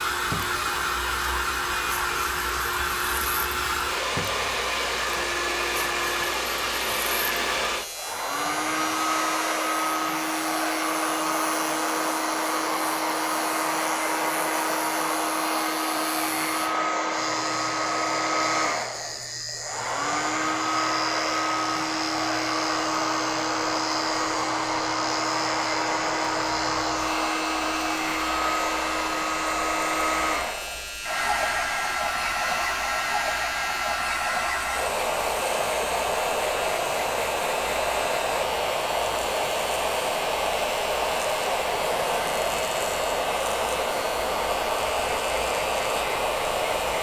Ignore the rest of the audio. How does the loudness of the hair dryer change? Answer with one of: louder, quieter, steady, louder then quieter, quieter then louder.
steady.